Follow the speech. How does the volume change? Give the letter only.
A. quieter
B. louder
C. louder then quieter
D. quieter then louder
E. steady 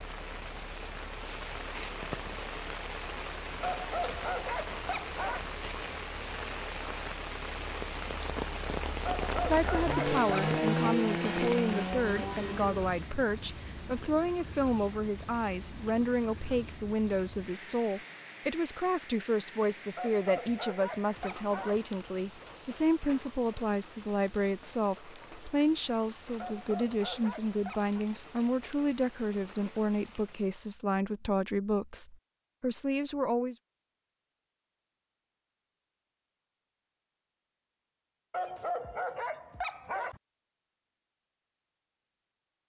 E.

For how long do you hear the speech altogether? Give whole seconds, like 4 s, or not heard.
24 s.